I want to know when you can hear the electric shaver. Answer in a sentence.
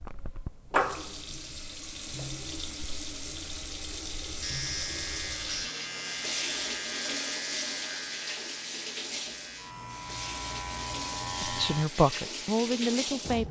The electric shaver can be heard from 4.4 to 11.8 s.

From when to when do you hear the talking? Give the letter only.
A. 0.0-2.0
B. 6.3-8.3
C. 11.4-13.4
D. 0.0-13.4
C.